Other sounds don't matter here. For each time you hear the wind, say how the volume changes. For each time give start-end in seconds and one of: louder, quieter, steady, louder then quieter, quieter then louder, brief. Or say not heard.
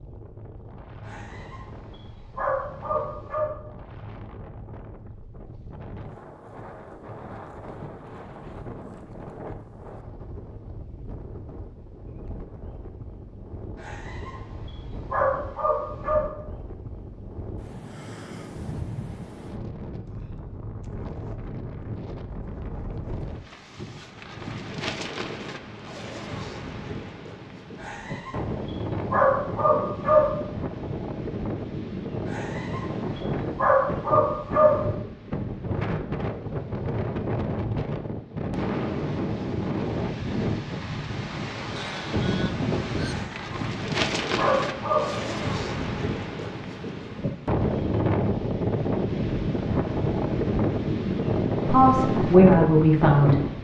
0.0-53.5 louder.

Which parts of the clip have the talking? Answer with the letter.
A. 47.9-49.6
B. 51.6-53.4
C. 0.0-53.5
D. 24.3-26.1
B.